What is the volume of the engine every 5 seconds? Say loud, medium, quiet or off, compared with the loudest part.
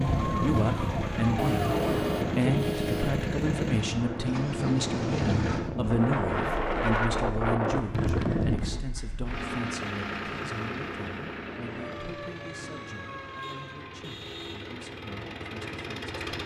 loud, loud, medium, loud.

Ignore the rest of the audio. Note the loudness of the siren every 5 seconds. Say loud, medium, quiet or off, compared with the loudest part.
loud, off, medium, off.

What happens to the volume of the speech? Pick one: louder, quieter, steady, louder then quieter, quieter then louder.
quieter.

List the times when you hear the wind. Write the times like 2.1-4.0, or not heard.
0.0-8.8.